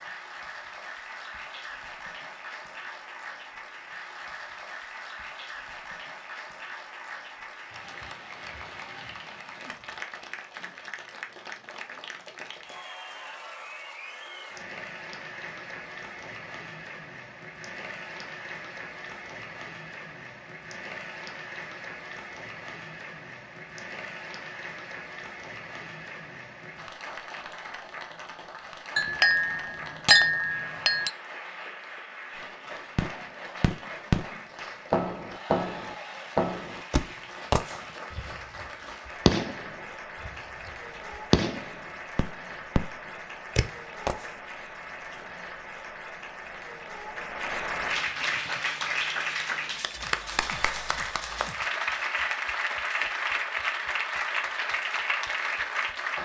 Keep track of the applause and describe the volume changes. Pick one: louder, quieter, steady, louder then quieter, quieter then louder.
louder.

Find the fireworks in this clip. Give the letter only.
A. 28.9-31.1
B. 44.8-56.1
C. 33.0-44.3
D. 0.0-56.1
C.